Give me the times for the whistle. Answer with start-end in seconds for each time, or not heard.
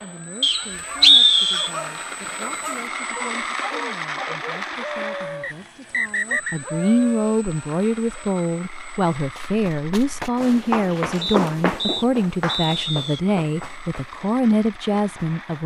0.4-1.7, 5.4-6.6, 11.2-13.2.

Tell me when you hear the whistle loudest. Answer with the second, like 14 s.
1 s.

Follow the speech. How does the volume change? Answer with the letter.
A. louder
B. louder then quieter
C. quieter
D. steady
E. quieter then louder
A.